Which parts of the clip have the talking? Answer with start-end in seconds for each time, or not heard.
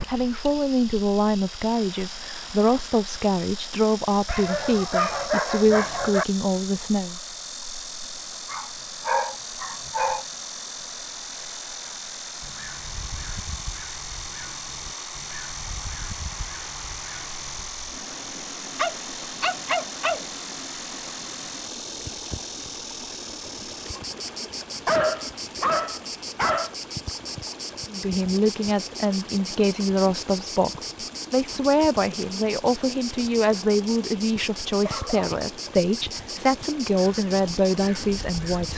0.1-7.2, 27.9-38.7.